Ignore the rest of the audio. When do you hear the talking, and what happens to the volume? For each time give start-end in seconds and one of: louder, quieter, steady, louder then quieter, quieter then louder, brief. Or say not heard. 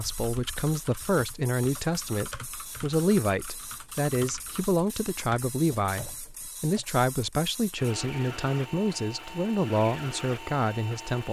0.0-11.2 steady.